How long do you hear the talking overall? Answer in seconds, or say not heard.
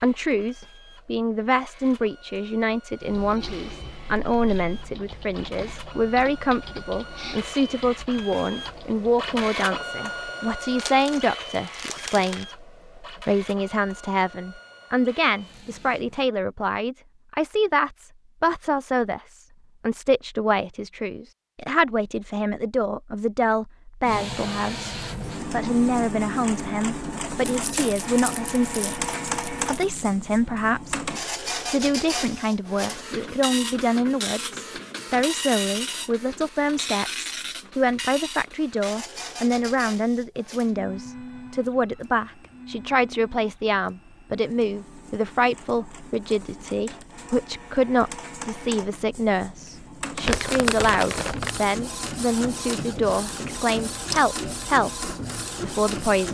56 s.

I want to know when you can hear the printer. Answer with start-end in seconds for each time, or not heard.
0.0-16.3, 24.0-56.2.